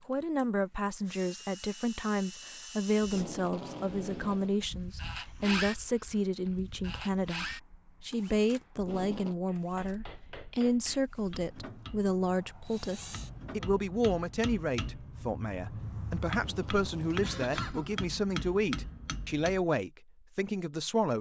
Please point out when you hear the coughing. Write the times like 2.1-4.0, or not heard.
16.6-18.0.